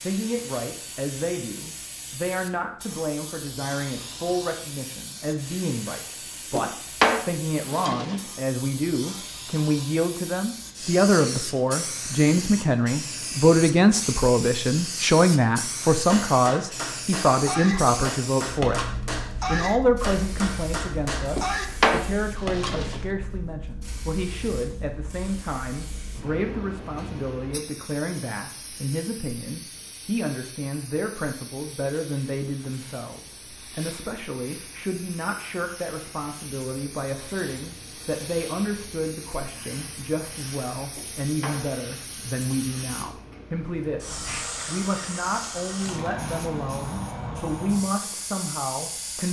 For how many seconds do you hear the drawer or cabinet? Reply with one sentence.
The drawer or cabinet can be heard for 4 seconds in total.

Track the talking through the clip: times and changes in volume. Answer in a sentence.
The talking can be heard from 0.0 to 49.2 s, getting louder then quieter.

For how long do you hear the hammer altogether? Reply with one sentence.
You can hear the hammer for 6 seconds altogether.